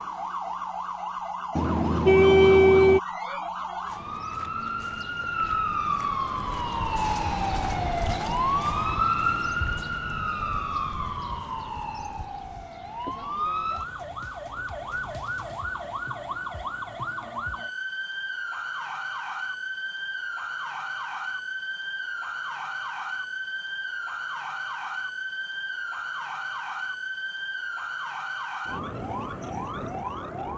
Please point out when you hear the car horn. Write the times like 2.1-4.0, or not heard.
1.6-3.0.